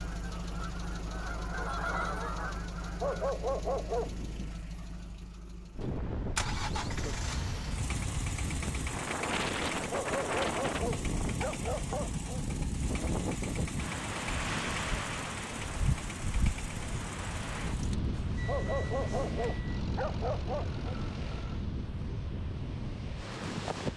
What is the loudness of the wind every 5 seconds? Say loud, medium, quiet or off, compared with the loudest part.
off, loud, loud, loud, loud.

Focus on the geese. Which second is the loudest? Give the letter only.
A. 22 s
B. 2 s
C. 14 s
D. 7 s
B.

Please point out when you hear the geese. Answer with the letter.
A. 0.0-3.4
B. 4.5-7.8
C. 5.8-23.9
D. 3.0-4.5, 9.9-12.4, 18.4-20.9
A.